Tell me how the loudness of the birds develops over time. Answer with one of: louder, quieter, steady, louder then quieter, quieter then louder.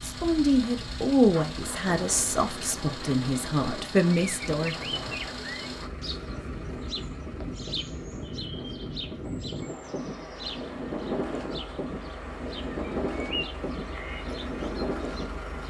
quieter then louder.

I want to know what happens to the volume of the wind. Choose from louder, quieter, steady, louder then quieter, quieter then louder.
louder.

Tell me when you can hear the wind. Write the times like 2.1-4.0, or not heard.
0.0-15.6.